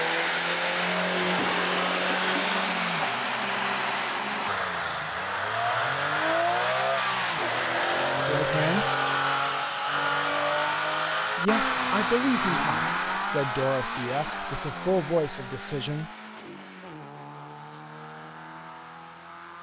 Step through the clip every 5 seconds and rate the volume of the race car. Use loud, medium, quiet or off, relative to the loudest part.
loud, loud, loud, quiet.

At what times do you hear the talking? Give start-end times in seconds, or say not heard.
8.2-8.9, 11.3-16.1.